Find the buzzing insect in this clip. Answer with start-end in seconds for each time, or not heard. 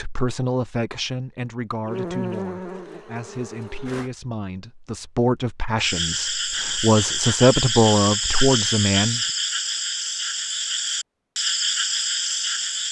1.9-4.1.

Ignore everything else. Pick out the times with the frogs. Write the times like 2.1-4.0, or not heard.
5.8-12.8.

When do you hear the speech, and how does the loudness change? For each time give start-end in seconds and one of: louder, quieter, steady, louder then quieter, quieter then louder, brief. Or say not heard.
0.0-9.2 quieter then louder.